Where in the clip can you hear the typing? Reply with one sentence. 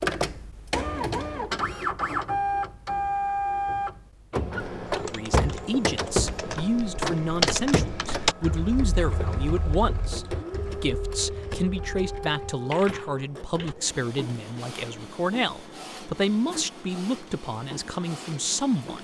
The typing can be heard from 4.8 to 13.8 s.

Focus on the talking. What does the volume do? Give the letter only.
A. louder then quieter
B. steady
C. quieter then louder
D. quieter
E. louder
B.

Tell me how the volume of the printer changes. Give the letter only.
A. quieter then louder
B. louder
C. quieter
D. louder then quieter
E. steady
C.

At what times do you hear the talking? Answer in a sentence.
You can hear the talking from 5.1 to 19.0 s.